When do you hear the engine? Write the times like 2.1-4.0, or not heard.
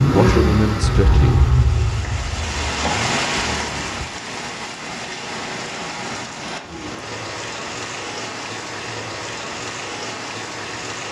0.0-4.0.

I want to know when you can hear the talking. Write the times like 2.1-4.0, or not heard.
0.1-1.4.